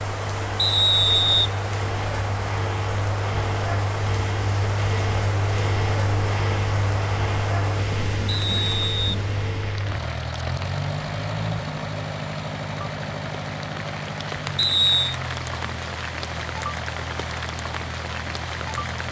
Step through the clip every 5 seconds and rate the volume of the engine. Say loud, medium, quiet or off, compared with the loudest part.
loud, loud, loud, medium.